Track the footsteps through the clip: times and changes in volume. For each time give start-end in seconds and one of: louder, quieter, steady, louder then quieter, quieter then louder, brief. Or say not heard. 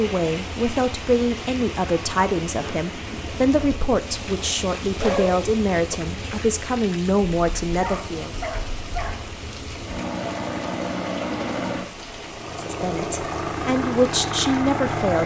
not heard.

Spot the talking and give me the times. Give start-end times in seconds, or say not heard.
0.0-8.3, 12.6-15.2.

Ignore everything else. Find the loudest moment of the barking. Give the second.
5 s.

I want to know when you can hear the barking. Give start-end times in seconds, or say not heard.
4.8-6.0, 7.8-9.3.